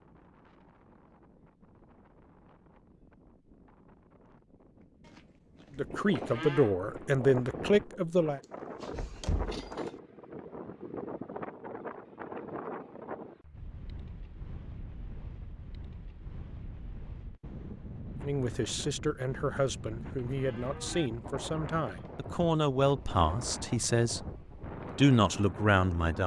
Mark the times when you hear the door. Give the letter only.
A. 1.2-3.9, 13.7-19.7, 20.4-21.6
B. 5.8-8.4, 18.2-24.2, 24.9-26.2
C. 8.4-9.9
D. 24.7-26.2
C.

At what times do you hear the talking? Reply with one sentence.
The talking can be heard from 5.8 to 8.4 s, from 18.2 to 24.2 s and from 24.9 to 26.2 s.